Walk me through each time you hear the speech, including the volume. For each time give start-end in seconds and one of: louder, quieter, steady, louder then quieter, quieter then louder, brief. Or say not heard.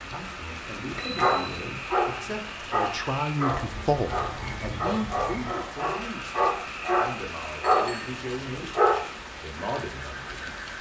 0.0-10.6 louder then quieter.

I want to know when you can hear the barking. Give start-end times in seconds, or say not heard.
1.1-9.1.